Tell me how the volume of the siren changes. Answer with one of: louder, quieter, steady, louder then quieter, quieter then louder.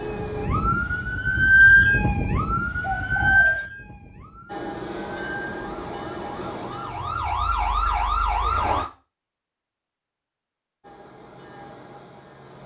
quieter then louder.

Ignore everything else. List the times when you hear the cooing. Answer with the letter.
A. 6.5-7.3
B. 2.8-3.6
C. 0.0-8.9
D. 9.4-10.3
B.